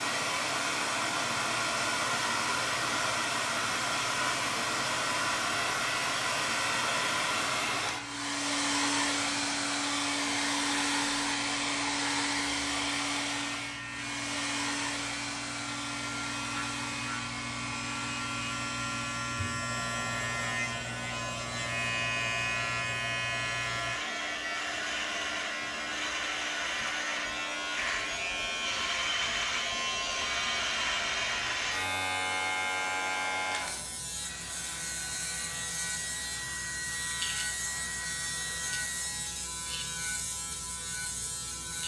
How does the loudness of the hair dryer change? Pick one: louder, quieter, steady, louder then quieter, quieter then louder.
quieter.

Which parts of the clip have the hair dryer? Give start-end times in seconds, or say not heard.
0.0-39.4.